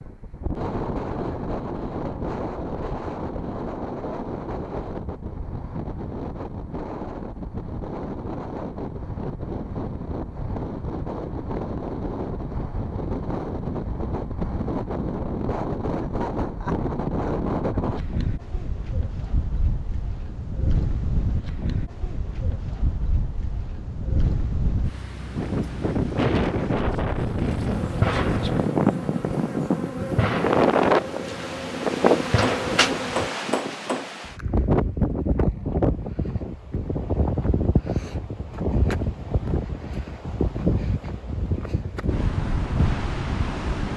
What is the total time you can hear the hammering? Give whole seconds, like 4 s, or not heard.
2 s.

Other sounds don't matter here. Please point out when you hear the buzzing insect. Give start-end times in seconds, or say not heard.
27.7-33.3.